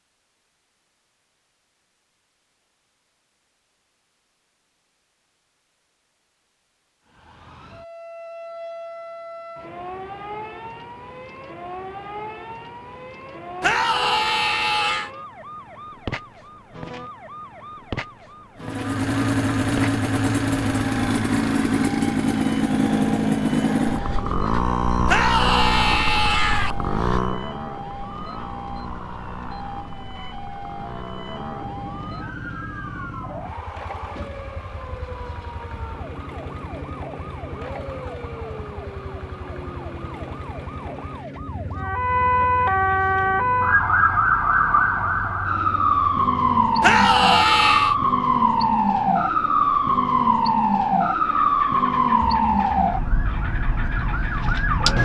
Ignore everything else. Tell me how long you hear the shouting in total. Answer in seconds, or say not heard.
4 s.